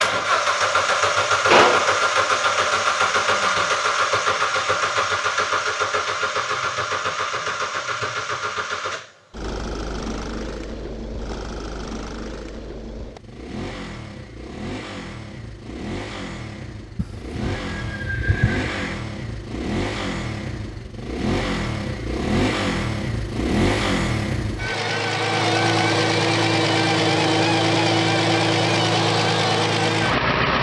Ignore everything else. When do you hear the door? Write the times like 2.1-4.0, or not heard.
not heard.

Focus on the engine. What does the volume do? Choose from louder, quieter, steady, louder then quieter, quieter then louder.
quieter then louder.